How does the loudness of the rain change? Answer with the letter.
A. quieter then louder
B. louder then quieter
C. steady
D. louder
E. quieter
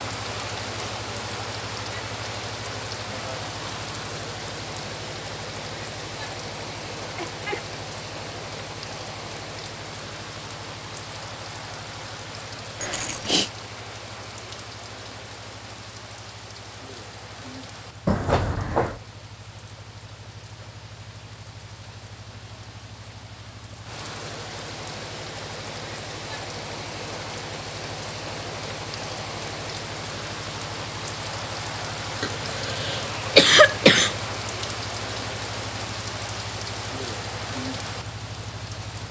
A.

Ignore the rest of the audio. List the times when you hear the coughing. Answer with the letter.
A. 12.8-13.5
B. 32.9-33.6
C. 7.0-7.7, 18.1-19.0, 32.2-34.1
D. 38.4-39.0
C.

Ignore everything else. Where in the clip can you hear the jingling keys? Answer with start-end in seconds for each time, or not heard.
12.8-13.5.